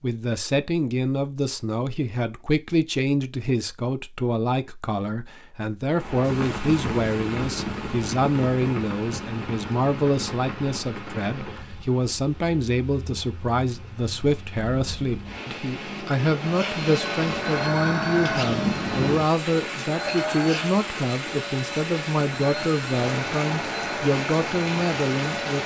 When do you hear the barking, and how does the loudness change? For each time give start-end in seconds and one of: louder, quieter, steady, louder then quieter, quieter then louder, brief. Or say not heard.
not heard.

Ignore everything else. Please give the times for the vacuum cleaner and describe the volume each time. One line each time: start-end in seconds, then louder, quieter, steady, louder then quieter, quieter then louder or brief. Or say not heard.
16.4-25.6 quieter.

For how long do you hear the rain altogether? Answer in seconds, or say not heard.
20 s.